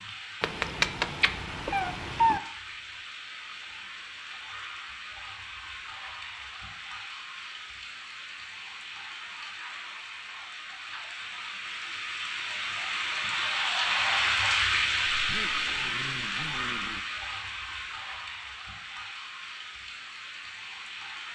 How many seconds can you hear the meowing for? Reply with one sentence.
You can hear the meowing for 2 seconds altogether.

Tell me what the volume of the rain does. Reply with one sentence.
The volume of the rain goes up, then down.